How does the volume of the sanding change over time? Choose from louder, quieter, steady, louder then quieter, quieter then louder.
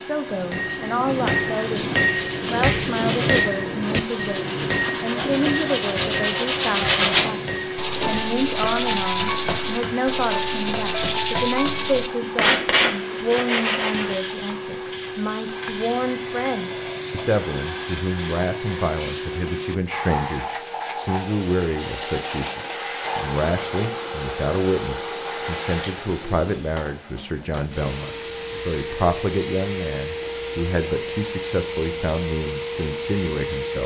louder.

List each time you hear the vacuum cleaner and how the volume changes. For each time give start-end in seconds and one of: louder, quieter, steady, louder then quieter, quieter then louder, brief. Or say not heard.
0.0-33.8 steady.